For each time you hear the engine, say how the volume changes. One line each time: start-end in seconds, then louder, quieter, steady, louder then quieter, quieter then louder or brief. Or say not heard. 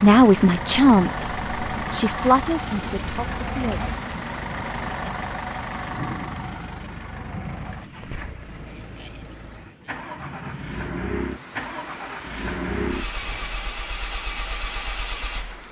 0.0-15.6 quieter then louder.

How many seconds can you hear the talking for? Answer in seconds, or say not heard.
4 s.